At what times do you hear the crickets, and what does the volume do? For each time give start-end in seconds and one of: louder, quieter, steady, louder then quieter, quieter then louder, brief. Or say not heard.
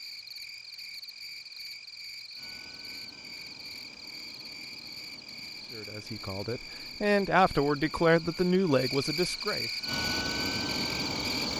0.0-11.5 louder.